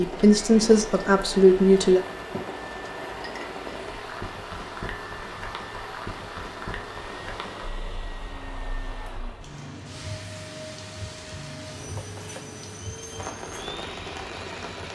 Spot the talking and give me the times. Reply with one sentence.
You can hear the talking from 0.0 to 2.0 s.